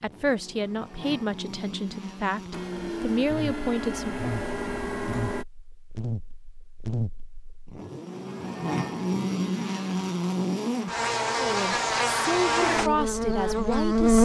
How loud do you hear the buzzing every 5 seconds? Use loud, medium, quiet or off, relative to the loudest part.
quiet, medium, loud.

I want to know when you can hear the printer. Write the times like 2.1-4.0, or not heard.
2.5-5.5.